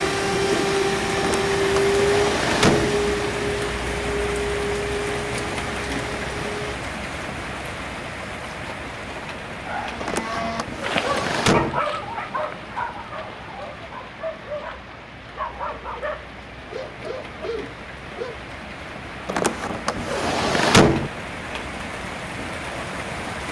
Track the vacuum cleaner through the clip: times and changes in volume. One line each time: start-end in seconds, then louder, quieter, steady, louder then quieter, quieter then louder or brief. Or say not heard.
0.0-6.8 quieter.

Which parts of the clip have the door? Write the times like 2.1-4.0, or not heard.
1.1-3.0, 10.0-11.8, 19.2-21.1.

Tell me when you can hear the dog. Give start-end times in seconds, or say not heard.
9.7-18.4.